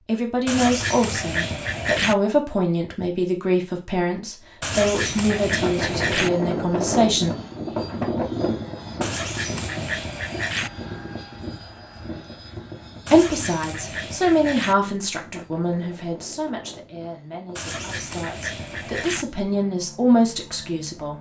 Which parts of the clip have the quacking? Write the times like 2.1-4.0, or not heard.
0.5-2.1, 4.6-6.3, 9.0-10.7, 13.1-14.8, 17.6-19.2.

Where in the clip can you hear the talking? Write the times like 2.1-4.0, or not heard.
0.1-7.3, 13.1-21.1.